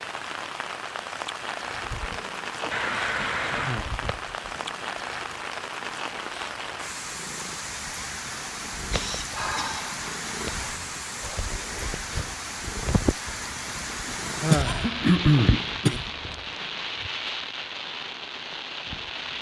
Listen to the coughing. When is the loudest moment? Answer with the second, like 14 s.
15 s.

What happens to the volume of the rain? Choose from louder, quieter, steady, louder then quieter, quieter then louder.
steady.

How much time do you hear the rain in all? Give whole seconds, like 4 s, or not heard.
19 s.